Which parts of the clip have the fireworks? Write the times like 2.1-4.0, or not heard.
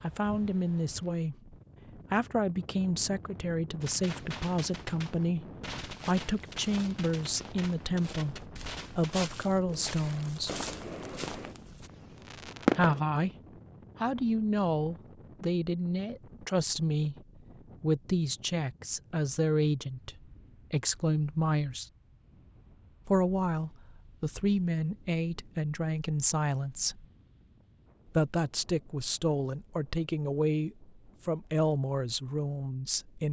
3.8-13.1.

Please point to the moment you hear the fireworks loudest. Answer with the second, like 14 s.
13 s.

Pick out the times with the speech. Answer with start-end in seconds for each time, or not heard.
0.0-10.5, 12.8-13.3, 14.0-21.9, 23.1-27.1, 28.1-33.2.